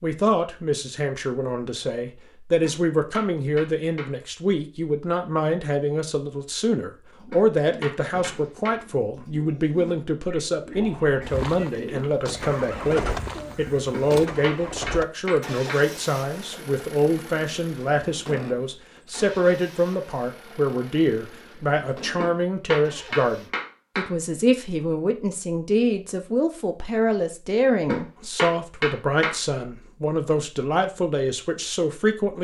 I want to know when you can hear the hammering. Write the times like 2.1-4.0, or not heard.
2.6-4.1, 7.3-8.8, 13.9-15.8, 22.1-24.1, 27.9-29.4.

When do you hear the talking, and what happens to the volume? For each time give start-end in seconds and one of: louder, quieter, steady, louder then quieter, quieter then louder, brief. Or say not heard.
0.0-32.3 steady.